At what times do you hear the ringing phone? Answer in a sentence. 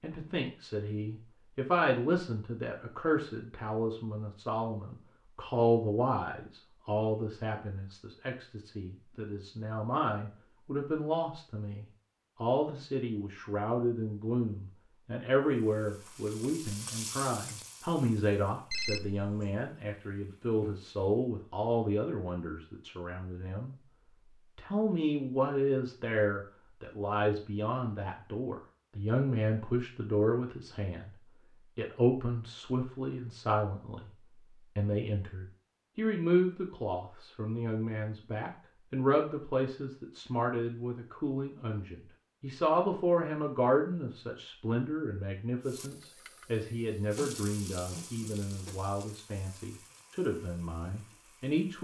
You can hear the ringing phone from 18.7 to 19.7 s.